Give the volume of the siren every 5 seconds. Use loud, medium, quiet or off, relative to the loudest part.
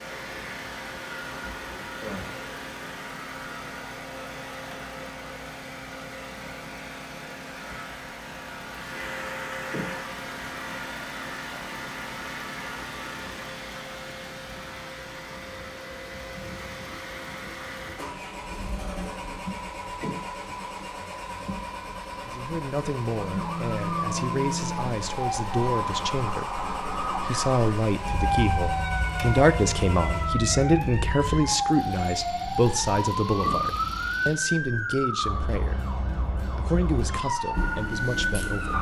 off, off, off, off, loud, loud, loud, loud.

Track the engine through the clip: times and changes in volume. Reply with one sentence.
The engine can be heard from 0.0 to 34.4 s, at a steady volume.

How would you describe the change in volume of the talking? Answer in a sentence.
The loudness of the talking goes up, then down.